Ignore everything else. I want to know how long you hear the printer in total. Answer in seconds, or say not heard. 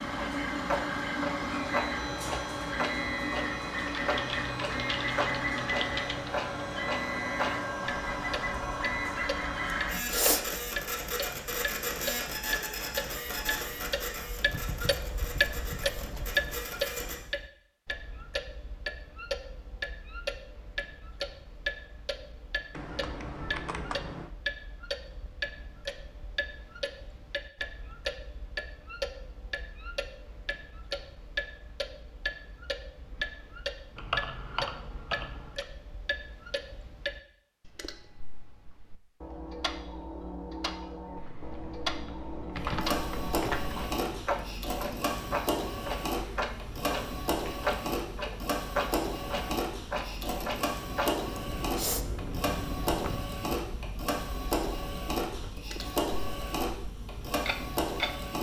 33 s.